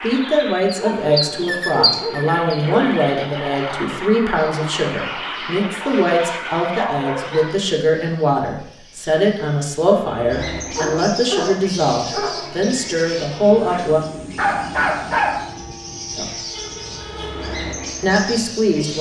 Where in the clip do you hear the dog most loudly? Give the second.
15 s.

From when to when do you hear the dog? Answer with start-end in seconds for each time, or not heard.
0.8-3.0, 5.8-7.5, 10.8-12.6, 14.3-15.4.